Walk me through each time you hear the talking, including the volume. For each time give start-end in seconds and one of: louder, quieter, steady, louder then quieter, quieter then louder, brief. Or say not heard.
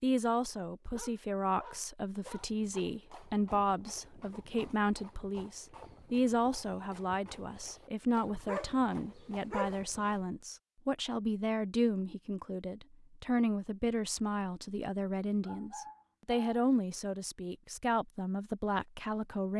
0.0-19.5 steady.